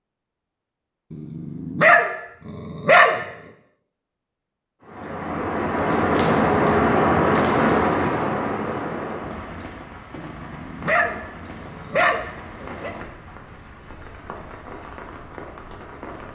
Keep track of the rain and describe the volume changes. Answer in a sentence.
The volume of the rain goes down.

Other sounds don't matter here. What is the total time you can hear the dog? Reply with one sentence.
The dog can be heard for 5 seconds in total.